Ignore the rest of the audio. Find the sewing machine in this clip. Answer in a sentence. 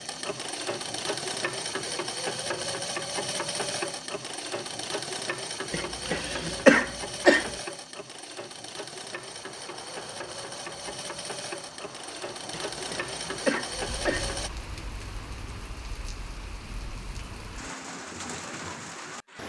The sewing machine can be heard from 0.0 to 14.5 s.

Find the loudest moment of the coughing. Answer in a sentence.
The volume of the coughing peaks at 7 seconds.